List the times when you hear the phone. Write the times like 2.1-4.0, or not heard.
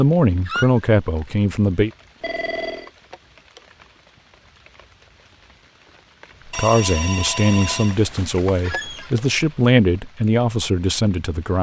2.2-2.9, 6.5-8.0.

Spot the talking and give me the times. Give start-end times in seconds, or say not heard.
0.0-1.9, 6.5-11.5.